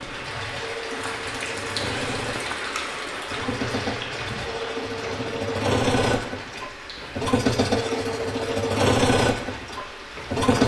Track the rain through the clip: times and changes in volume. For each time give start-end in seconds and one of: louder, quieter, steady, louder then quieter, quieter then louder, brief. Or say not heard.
0.0-10.6 quieter.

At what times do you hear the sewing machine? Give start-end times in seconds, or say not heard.
0.0-10.6.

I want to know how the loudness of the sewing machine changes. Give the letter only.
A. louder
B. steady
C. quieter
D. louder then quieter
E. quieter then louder
A.